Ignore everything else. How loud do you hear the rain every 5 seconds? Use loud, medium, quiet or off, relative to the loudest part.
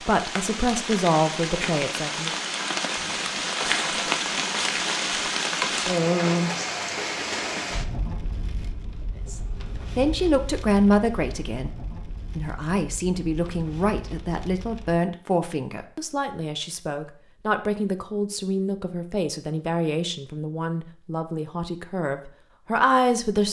loud, loud, quiet, off, off.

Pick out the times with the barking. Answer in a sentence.
You can't hear the barking here.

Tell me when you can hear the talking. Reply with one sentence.
You can hear the talking from 0.0 to 2.4 s and from 9.2 to 23.4 s.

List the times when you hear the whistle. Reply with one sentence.
The whistle can't be heard in this clip.